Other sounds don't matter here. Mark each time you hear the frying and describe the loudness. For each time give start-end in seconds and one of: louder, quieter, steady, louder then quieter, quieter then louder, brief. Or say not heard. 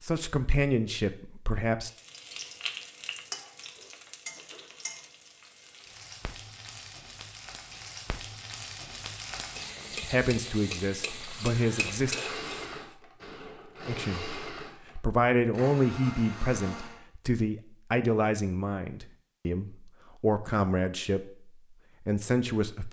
1.9-12.8 quieter then louder.